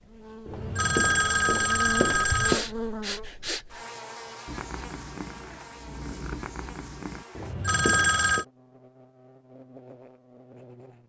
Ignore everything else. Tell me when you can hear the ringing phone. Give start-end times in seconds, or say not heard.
0.5-2.6, 7.3-8.4.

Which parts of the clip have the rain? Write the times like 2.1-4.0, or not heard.
not heard.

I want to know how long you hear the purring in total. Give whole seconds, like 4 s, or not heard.
3 s.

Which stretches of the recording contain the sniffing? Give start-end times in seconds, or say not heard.
2.5-3.9.